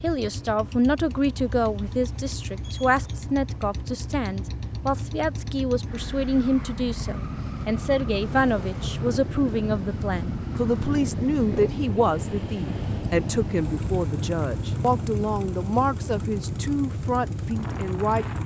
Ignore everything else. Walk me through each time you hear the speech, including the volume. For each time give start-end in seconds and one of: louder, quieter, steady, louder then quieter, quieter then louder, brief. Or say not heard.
0.0-18.2 steady.